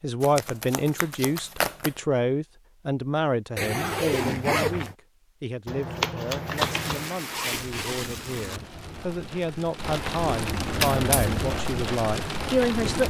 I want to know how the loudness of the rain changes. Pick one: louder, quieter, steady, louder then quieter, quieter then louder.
louder.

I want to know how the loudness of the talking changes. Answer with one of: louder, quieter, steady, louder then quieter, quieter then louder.
quieter then louder.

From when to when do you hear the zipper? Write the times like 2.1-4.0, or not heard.
3.5-5.0, 6.5-8.6.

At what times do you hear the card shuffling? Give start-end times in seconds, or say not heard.
0.2-2.0, 5.7-7.1, 10.7-11.4.